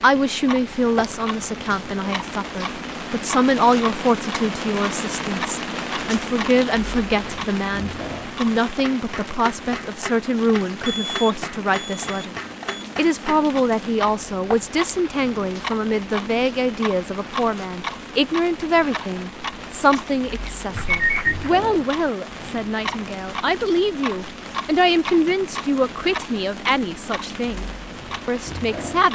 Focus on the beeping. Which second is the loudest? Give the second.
21 s.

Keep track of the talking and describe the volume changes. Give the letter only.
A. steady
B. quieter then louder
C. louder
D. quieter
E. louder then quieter
A.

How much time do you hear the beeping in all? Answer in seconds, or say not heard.
3 s.